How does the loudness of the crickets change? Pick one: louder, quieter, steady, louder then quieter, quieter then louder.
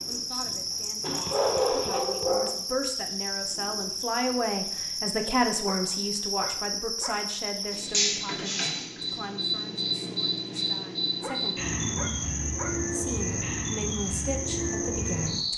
steady.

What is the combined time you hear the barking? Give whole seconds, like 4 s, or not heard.
5 s.